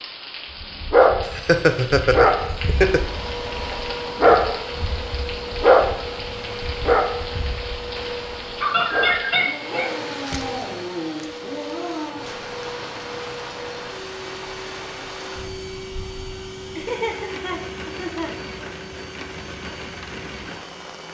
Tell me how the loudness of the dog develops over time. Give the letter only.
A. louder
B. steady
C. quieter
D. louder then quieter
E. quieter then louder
C.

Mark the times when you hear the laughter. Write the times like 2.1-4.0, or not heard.
1.2-3.0, 8.6-9.9, 16.8-18.6.